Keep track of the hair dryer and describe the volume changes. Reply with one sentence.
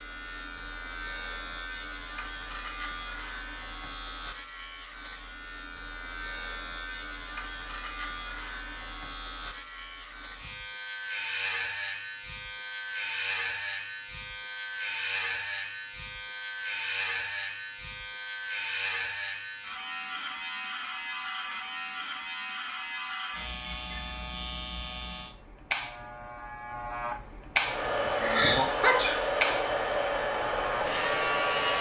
The loudness of the hair dryer stays about the same.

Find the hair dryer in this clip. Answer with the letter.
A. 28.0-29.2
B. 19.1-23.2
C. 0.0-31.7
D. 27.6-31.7
D.